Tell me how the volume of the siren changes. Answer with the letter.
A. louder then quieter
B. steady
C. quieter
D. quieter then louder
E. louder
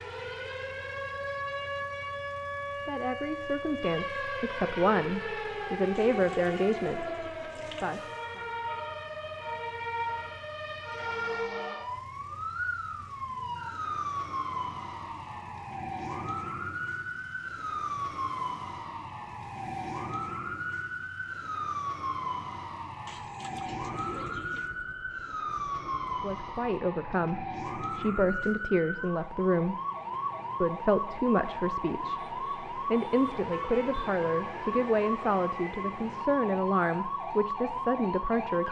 B.